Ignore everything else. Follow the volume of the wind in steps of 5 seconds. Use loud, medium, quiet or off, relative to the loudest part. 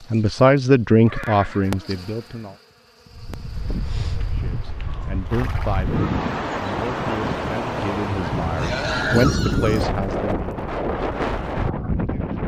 medium, loud, loud.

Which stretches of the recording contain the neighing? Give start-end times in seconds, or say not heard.
1.1-2.5, 5.0-6.0, 8.6-9.8.